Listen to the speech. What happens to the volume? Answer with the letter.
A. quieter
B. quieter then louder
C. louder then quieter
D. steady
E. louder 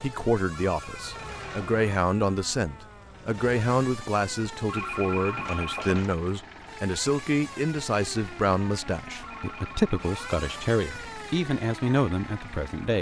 D.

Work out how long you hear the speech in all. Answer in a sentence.
The speech can be heard for 13 seconds in total.